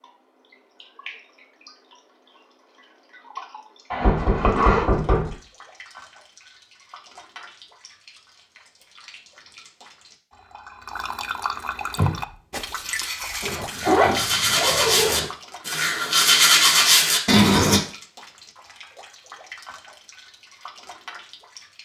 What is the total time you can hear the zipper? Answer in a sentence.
The zipper can be heard for 3 seconds in total.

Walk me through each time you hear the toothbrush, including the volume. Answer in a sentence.
The toothbrush can be heard from 11.9 to 17.8 s, getting louder.